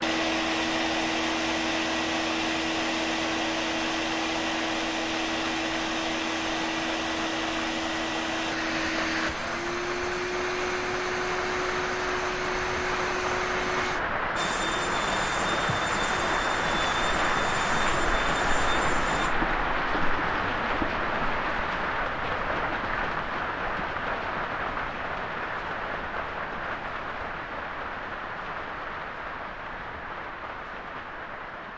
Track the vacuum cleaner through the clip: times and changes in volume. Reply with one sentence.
You can hear the vacuum cleaner from 0.0 to 19.4 s, getting quieter.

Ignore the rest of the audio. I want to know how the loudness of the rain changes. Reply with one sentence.
The loudness of the rain goes up, then down.